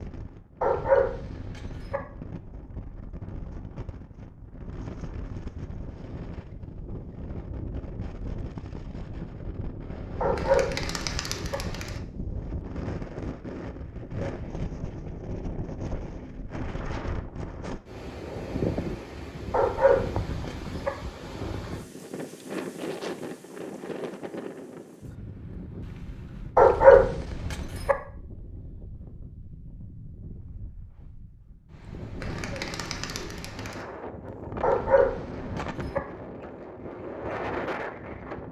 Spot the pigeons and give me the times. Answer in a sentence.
You can hear the pigeons from 10.3 to 12.0 s and from 32.2 to 33.9 s.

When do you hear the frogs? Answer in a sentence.
The frogs can't be heard in this clip.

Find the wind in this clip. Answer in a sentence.
You can hear the wind from 0.0 to 38.4 s.